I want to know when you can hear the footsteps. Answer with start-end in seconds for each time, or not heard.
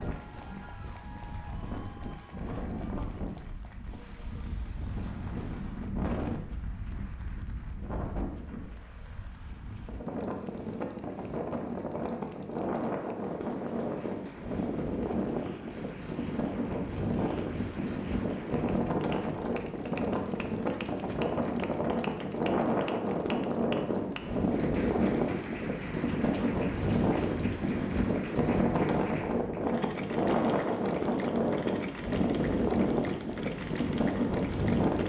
not heard.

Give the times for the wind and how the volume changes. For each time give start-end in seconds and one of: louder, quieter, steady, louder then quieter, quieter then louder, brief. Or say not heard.
0.0-35.0 louder.